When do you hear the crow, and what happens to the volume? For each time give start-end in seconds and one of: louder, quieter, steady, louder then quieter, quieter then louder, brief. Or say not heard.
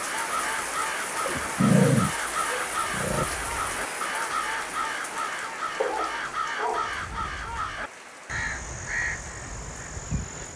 0.0-10.5 steady.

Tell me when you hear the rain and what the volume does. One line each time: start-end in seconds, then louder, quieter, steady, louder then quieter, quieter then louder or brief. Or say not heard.
0.0-10.5 quieter.